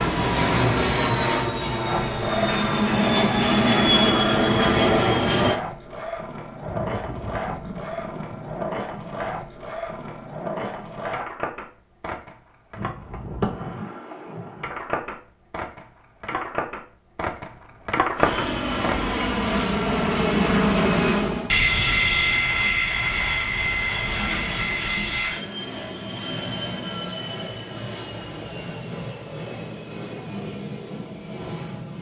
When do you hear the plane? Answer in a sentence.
You can hear the plane from 0.0 to 5.6 s and from 18.1 to 31.9 s.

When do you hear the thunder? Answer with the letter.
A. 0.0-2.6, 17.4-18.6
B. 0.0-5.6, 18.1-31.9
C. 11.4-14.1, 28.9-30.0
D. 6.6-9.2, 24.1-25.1
D.